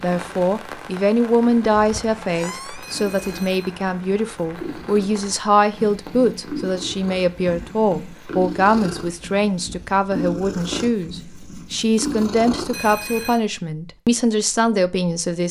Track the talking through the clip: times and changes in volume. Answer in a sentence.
You can hear the talking from 0.0 to 15.4 s, at a steady volume.